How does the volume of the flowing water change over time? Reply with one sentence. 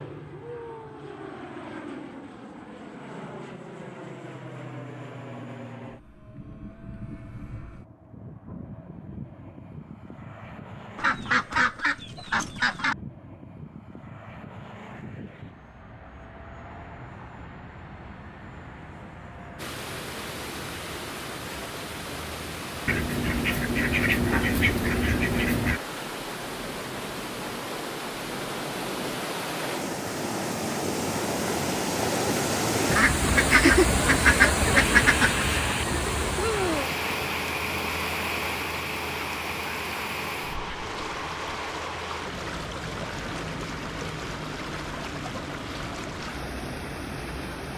The loudness of the flowing water goes up, then down.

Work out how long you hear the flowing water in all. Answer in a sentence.
You can hear the flowing water for 28 seconds altogether.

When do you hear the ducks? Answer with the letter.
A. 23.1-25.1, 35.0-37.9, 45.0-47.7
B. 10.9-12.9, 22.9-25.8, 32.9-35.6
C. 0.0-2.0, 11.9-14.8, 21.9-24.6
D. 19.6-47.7
B.